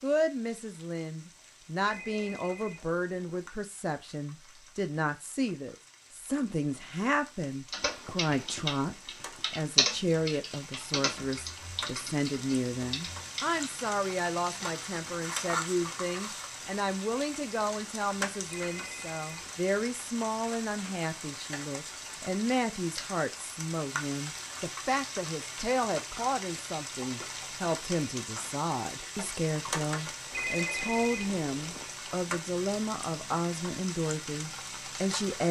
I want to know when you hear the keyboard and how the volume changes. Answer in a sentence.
The keyboard can be heard from 7.7 to 13.6 s, getting louder then quieter.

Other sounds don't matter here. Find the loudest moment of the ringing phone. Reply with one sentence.
The volume of the ringing phone peaks at 31 seconds.